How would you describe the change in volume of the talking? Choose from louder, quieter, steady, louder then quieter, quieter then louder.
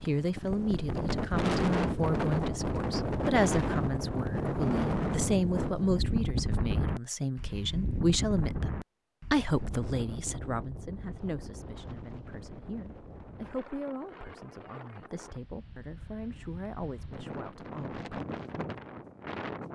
quieter.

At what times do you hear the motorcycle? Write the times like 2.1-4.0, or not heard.
not heard.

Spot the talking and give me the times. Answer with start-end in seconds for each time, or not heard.
0.0-18.1.